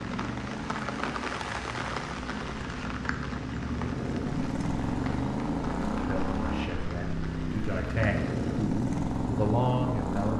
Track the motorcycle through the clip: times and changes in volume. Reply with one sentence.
The motorcycle can be heard from 0.0 to 10.3 s, getting louder.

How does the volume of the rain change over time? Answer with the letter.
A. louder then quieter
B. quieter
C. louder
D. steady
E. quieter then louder
B.